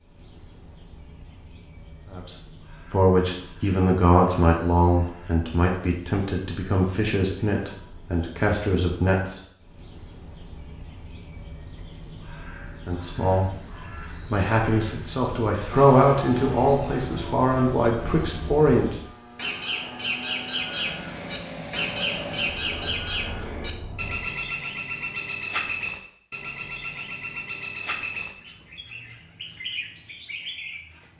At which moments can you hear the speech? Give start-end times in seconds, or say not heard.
2.1-9.4, 12.8-13.5, 14.3-18.9.